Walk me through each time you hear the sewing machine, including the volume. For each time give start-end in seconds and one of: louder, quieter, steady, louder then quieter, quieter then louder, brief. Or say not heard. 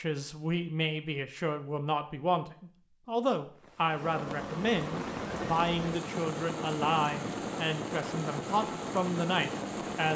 3.9-10.1 steady.